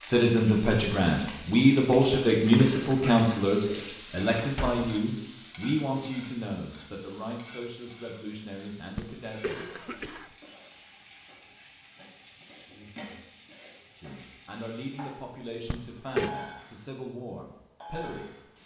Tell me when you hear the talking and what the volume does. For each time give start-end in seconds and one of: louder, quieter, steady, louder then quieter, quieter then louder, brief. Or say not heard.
0.0-9.6 quieter
13.9-18.4 steady.